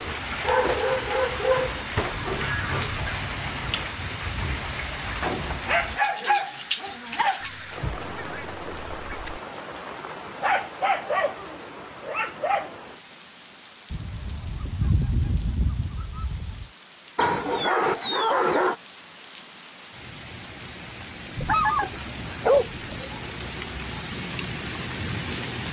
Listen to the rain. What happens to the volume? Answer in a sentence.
The loudness of the rain goes down, then up.